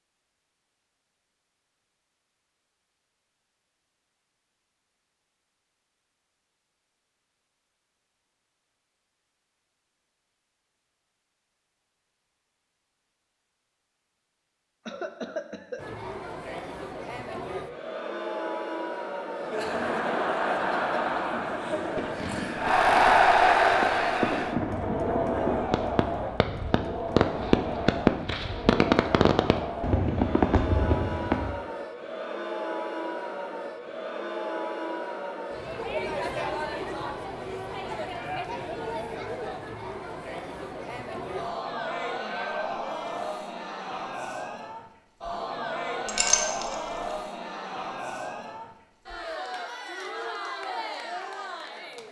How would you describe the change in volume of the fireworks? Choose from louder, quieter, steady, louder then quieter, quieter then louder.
louder.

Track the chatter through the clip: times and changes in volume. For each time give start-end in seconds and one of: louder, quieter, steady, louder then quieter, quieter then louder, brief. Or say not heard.
15.8-52.0 quieter.